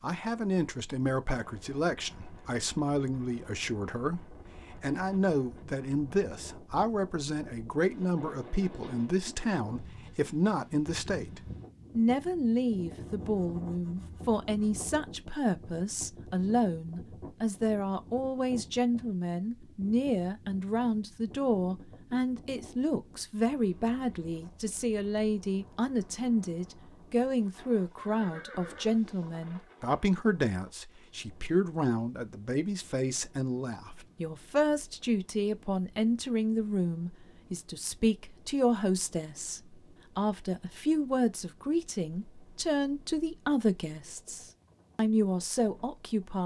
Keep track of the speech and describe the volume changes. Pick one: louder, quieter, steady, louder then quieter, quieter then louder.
steady.